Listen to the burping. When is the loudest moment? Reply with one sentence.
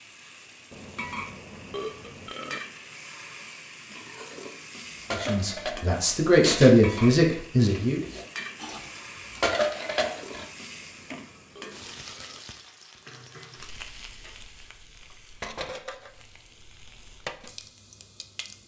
The volume of the burping peaks at 2 seconds.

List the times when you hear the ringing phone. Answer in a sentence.
The ringing phone can't be heard in this clip.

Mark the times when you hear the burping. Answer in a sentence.
The burping can be heard from 0.7 to 2.6 s and from 10.7 to 12.4 s.